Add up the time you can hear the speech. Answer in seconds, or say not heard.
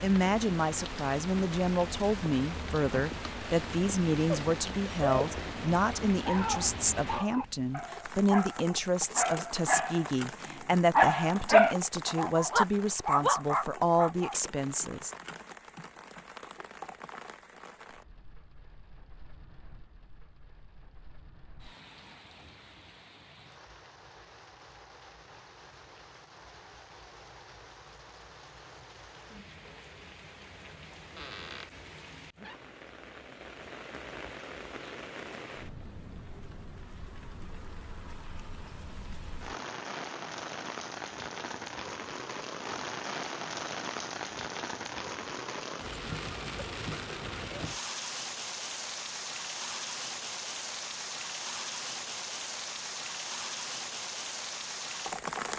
15 s.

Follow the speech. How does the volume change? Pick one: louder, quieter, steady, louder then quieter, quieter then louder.
steady.